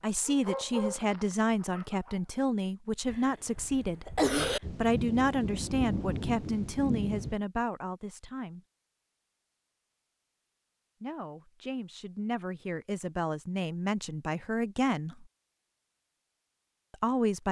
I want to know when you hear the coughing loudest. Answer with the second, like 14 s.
4 s.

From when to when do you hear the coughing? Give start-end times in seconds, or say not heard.
3.0-4.6.